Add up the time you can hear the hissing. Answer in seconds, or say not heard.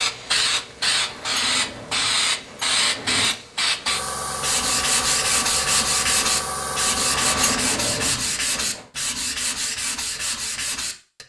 8 s.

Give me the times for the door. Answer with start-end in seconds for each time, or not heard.
1.1-3.4, 7.1-8.8.